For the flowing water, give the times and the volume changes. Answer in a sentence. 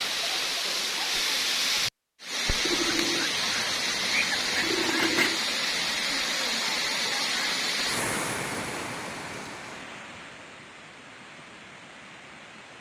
You can hear the flowing water from 0.0 to 12.7 s, getting quieter.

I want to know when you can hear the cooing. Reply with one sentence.
You can hear the cooing from 2.6 to 5.4 s.